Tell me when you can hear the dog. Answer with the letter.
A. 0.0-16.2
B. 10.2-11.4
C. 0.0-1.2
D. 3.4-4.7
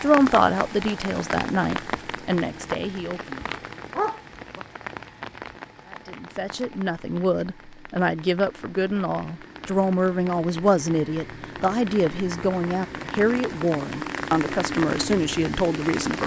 D.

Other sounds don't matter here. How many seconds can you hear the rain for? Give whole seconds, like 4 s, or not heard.
16 s.